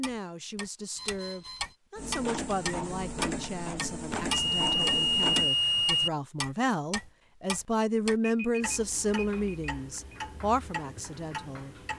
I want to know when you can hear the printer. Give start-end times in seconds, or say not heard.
1.9-5.5.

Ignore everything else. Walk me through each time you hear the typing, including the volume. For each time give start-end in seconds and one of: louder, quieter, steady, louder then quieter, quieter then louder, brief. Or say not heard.
not heard.